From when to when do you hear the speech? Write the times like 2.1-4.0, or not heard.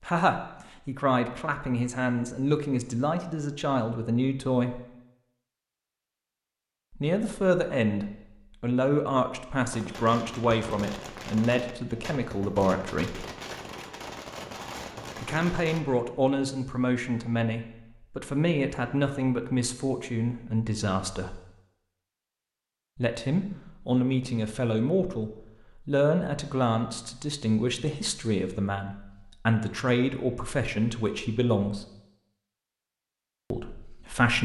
0.0-4.8, 7.0-13.2, 15.2-21.4, 22.9-31.9, 33.5-34.4.